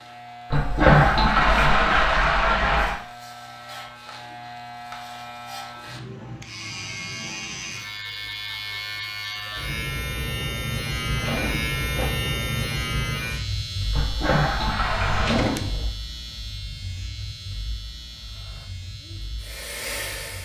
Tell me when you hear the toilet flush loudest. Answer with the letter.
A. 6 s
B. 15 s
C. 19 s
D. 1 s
D.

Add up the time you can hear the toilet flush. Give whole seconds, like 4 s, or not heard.
4 s.